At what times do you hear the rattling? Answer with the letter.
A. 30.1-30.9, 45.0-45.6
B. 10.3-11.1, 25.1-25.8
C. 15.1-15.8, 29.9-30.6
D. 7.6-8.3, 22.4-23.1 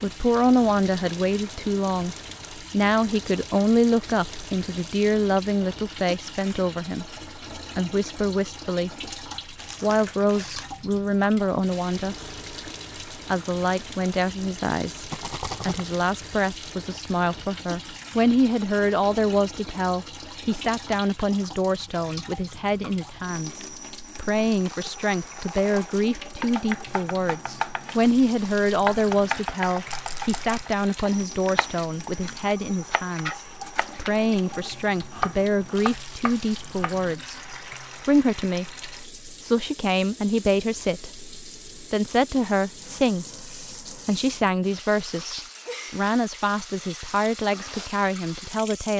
C.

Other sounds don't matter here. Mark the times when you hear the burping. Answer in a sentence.
You can't hear the burping here.